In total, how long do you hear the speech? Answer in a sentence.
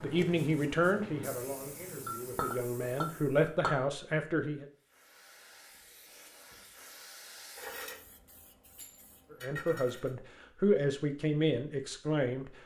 You can hear the speech for 8 seconds altogether.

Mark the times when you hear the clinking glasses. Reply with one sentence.
The clinking glasses can be heard from 2.0 to 3.8 s and from 8.8 to 9.2 s.